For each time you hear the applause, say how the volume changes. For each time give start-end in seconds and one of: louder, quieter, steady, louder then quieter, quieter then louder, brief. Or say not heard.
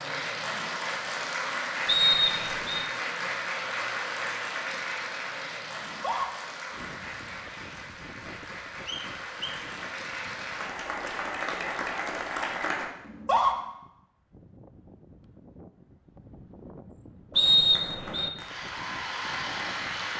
0.0-12.9 quieter then louder
17.4-20.1 brief.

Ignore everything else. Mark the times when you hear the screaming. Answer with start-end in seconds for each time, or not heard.
5.8-6.3, 13.1-13.6.